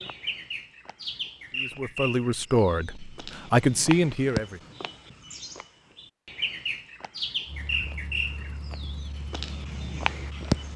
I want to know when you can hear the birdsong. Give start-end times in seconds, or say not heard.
0.0-10.7.